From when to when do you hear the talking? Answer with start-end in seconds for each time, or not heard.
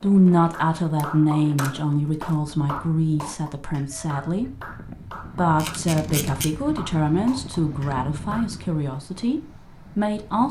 0.0-4.5, 5.3-10.4.